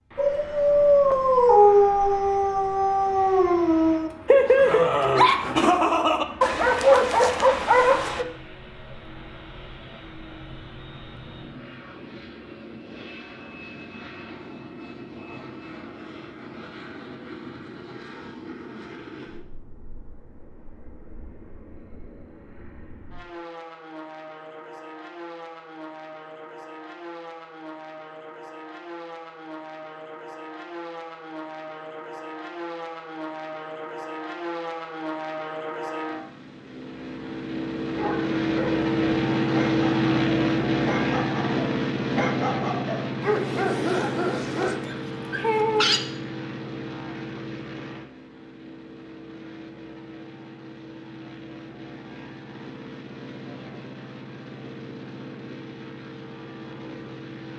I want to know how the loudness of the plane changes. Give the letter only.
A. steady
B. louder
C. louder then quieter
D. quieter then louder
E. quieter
C.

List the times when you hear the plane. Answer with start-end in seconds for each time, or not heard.
0.0-57.5.